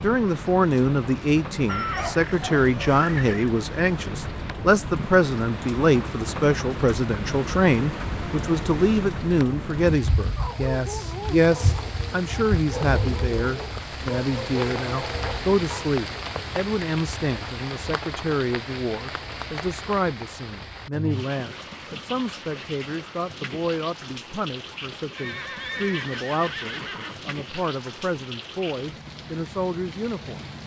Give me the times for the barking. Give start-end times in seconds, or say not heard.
10.3-15.9.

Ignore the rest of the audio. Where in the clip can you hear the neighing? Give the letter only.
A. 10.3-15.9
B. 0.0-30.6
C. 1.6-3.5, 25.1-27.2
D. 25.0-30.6
C.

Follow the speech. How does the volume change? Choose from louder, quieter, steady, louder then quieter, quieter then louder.
quieter.